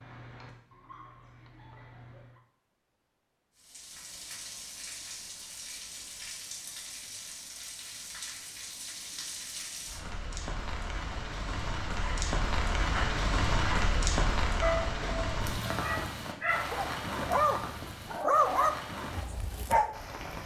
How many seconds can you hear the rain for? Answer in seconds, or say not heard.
17 s.